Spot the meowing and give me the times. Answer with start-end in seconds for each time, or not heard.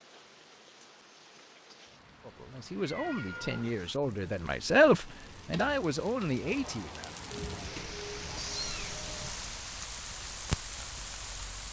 2.8-3.8, 7.3-9.3.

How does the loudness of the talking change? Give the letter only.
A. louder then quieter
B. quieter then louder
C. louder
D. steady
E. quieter
A.